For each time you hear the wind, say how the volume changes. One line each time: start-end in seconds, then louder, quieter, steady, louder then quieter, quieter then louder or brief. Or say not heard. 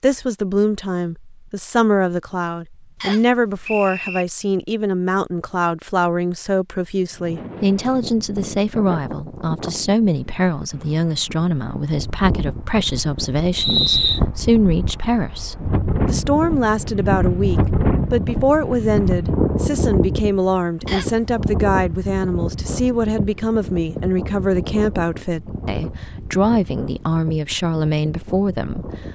7.1-29.1 louder then quieter.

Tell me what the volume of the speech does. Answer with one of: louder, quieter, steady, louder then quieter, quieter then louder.
steady.